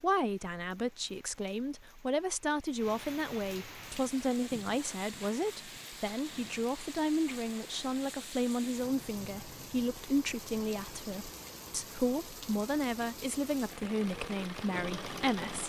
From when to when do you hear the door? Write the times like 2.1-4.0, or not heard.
not heard.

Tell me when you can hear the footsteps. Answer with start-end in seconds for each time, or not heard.
not heard.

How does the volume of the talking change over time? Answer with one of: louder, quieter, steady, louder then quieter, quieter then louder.
steady.